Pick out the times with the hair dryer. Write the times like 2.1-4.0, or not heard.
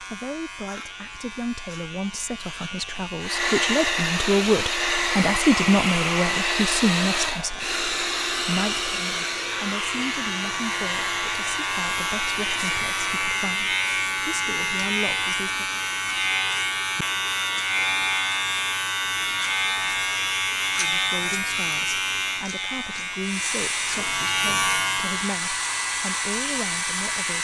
3.2-13.2, 23.2-27.3.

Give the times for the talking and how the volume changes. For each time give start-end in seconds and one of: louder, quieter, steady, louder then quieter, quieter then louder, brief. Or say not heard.
0.0-15.7 louder then quieter
20.8-27.3 steady.